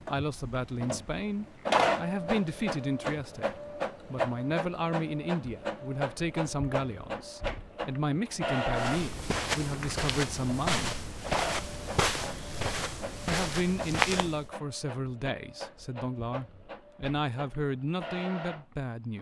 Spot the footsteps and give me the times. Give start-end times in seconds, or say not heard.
8.8-14.5.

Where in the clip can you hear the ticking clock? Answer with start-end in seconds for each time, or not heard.
not heard.